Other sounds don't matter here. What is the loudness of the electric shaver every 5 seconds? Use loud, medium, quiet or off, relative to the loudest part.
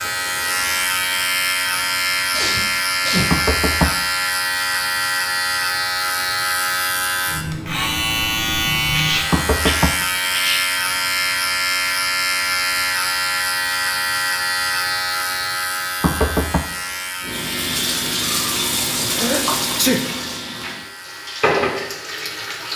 loud, loud, loud, medium, quiet.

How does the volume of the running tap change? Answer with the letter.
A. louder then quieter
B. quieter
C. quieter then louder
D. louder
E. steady
C.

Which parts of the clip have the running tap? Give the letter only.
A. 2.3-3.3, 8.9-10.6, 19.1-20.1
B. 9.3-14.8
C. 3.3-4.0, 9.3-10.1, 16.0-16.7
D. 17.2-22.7
D.